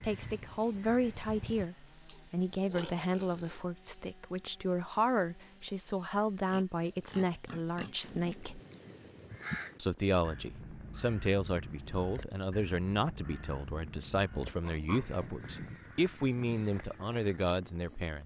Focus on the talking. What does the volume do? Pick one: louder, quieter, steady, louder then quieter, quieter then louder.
steady.